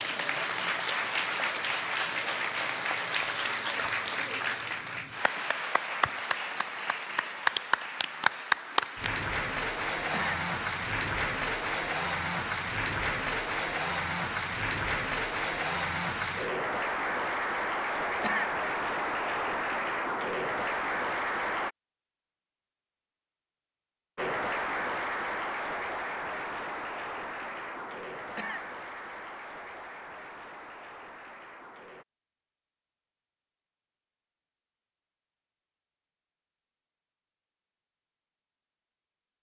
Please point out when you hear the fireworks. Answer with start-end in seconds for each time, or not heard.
not heard.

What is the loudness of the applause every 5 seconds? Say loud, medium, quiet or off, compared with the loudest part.
loud, loud, loud, loud, loud, medium, quiet, off.